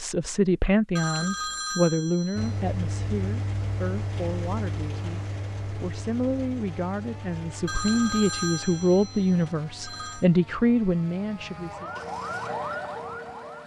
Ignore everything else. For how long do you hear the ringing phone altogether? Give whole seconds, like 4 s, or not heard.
4 s.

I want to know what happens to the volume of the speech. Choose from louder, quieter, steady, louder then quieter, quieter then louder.
quieter then louder.